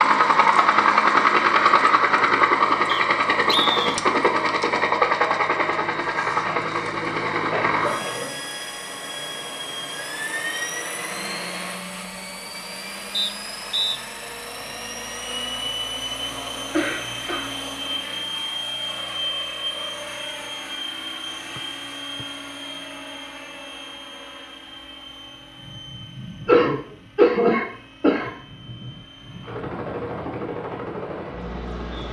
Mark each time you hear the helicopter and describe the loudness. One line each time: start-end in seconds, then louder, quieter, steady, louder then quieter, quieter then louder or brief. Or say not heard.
0.0-32.0 quieter.